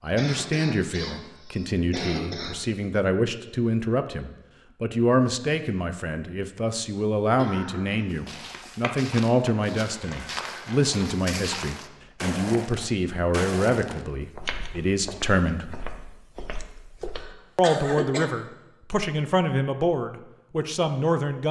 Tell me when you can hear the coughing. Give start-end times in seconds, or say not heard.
0.1-2.6, 7.3-8.1, 17.1-18.3.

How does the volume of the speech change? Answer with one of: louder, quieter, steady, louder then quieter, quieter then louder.
steady.